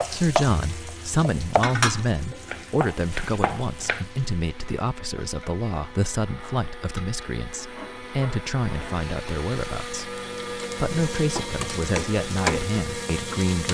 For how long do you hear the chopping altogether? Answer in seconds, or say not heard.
4 s.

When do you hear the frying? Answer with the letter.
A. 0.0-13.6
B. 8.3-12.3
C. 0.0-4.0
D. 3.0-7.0
A.